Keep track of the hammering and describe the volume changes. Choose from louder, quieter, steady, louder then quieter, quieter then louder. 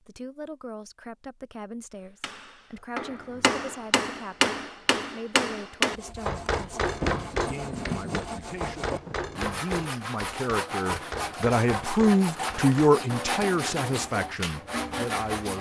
quieter.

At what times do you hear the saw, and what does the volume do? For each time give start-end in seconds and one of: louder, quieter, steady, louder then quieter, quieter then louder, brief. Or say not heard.
5.8-15.5 louder.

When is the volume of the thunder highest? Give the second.
7 s.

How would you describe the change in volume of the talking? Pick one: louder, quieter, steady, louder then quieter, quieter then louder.
louder.